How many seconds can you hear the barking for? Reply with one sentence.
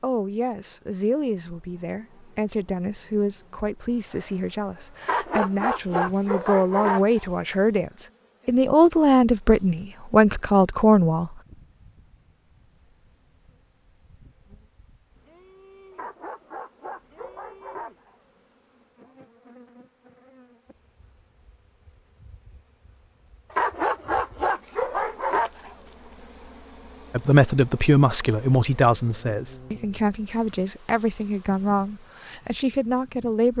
You can hear the barking for 7 seconds altogether.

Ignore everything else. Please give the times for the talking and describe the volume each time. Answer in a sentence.
The talking can be heard from 0.0 to 11.3 s, getting louder; and from 27.1 to 33.5 s, getting quieter.